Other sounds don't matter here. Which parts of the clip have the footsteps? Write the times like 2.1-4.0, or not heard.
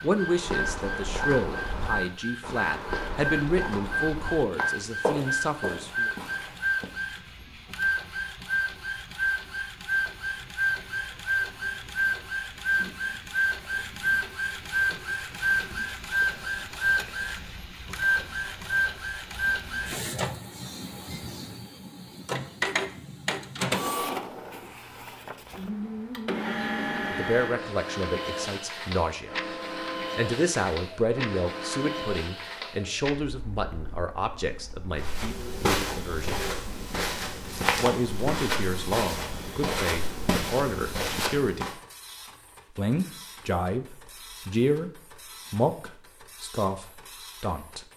0.1-6.9, 35.0-41.8.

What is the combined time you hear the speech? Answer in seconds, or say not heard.
24 s.